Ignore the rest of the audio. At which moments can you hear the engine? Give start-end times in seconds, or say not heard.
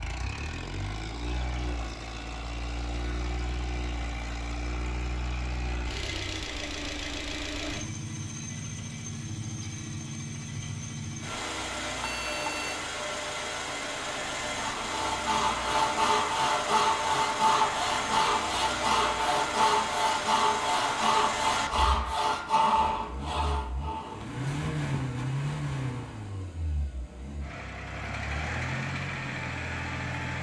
0.0-30.3.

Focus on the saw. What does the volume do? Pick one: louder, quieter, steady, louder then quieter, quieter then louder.
steady.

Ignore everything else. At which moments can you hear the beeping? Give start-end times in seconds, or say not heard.
12.0-12.8.